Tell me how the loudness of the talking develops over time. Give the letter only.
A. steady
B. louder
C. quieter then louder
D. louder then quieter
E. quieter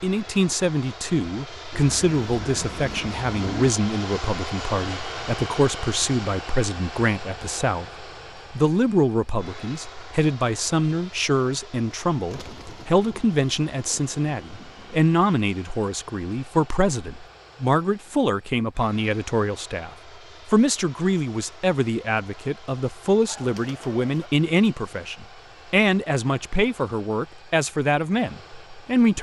A.